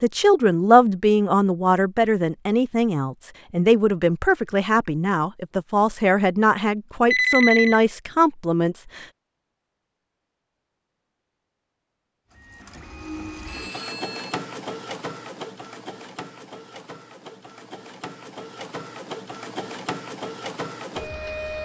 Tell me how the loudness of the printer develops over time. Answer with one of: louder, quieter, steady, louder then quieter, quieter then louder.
quieter then louder.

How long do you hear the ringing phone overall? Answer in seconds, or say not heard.
2 s.